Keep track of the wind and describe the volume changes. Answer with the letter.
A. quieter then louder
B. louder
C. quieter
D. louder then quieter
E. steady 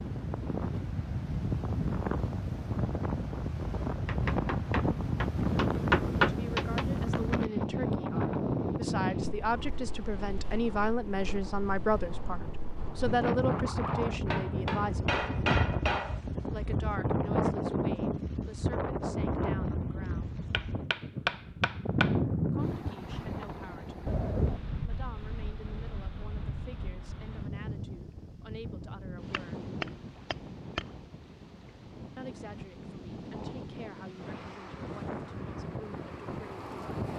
C.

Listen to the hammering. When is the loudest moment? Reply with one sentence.
The volume of the hammering peaks at 6 seconds.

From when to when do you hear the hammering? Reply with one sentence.
The hammering can be heard from 4.0 to 6.8 s, from 14.2 to 16.2 s, from 20.5 to 22.1 s and from 29.3 to 30.9 s.